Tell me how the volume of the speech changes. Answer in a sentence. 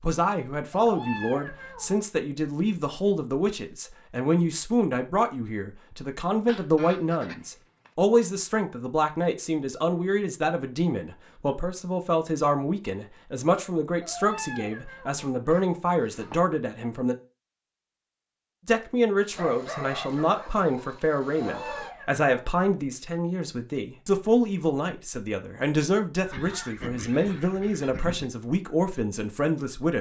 The loudness of the speech stays about the same.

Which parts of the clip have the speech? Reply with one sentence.
You can hear the speech from 0.0 to 17.1 s and from 18.6 to 29.9 s.